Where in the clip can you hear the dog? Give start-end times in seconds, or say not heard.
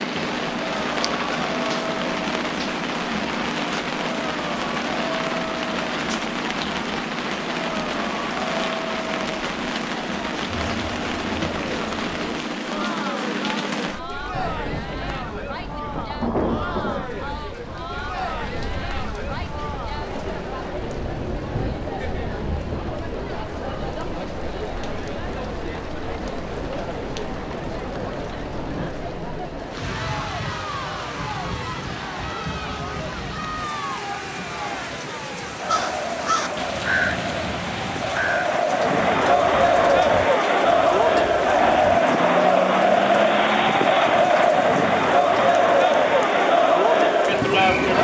not heard.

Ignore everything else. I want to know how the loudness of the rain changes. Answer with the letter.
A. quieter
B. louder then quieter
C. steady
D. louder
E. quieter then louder
A.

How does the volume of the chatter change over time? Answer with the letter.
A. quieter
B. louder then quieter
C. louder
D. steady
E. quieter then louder
C.